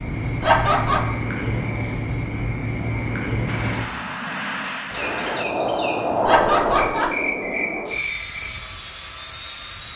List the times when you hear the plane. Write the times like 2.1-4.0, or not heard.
3.5-9.9.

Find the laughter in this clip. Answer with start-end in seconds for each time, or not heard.
0.4-1.1, 6.2-7.2.